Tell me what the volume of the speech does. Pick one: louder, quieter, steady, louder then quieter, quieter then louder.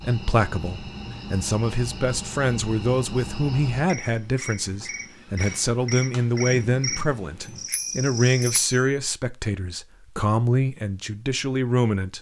steady.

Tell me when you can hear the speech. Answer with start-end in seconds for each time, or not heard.
0.0-12.1.